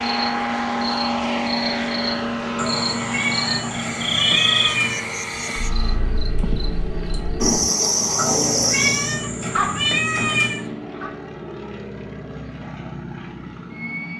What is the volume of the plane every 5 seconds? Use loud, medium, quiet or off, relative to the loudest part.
loud, medium, medium.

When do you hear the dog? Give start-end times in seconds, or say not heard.
9.5-11.1.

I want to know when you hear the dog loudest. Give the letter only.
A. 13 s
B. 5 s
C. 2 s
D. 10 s
D.